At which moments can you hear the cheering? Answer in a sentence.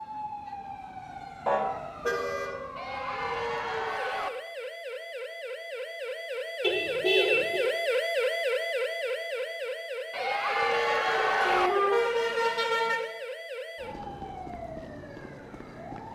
You can hear the cheering from 2.8 to 4.3 s and from 10.1 to 11.7 s.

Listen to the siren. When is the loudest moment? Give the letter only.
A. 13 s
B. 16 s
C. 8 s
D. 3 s
C.